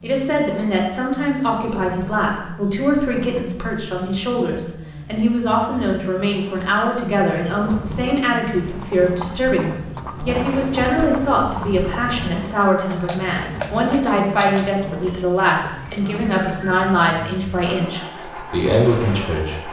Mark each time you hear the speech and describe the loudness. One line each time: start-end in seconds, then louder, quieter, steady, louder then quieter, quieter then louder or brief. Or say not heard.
0.0-19.6 steady.